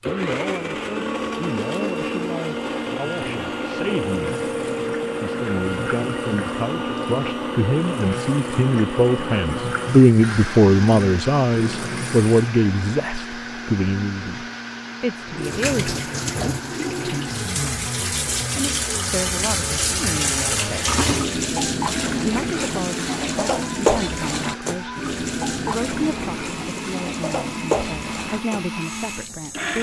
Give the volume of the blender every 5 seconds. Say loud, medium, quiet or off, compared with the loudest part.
loud, loud, medium, medium, medium, medium.